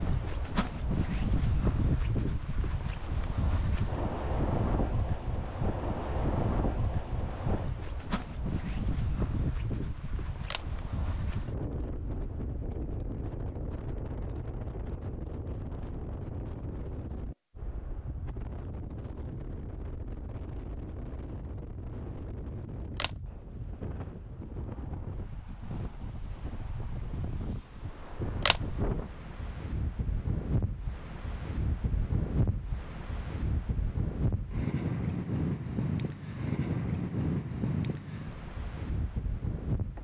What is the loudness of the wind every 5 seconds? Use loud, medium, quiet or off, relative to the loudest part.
loud, loud, medium, medium, medium, medium, loud, loud.